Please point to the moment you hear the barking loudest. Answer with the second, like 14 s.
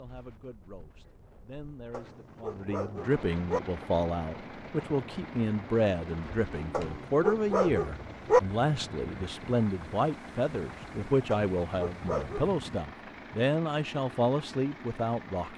8 s.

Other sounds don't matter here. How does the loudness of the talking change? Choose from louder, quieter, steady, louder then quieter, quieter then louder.
louder.